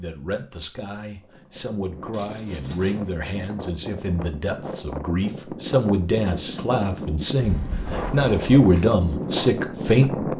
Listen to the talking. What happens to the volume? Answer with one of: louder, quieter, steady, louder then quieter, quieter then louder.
louder.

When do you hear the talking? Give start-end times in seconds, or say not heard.
0.0-10.3.